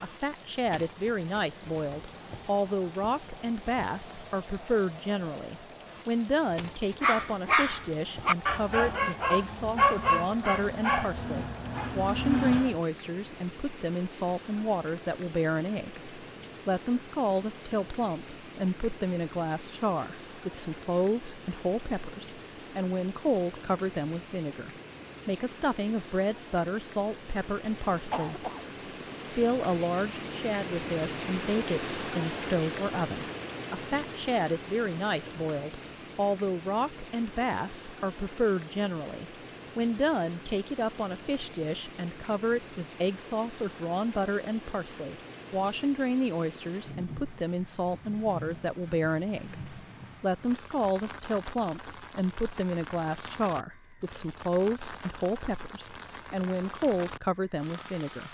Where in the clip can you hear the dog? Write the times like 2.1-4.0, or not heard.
7.0-12.8.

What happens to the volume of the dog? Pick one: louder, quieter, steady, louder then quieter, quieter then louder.
quieter.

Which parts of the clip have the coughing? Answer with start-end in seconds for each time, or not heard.
28.1-28.6.